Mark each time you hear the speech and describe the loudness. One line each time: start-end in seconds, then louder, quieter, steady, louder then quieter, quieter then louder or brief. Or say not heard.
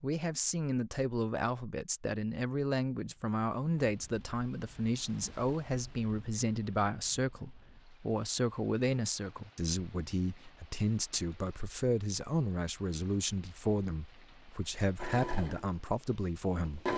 0.0-16.9 steady.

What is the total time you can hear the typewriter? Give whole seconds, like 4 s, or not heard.
not heard.